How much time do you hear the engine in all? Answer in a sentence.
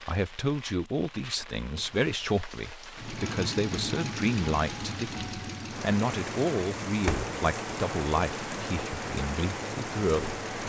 You can hear the engine for 8 seconds altogether.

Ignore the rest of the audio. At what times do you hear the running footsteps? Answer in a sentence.
The running footsteps can't be heard in this clip.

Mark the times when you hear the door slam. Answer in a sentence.
The door slam can be heard from 7.0 to 7.4 s.